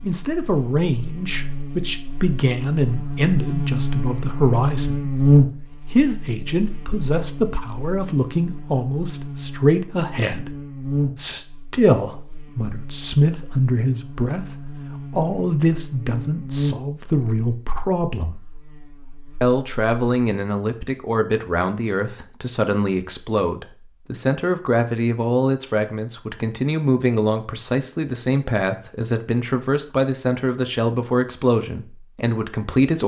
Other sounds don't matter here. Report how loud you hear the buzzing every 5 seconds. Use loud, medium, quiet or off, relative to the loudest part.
medium, loud, medium, medium, off, off, off.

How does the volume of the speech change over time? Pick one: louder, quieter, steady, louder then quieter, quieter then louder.
steady.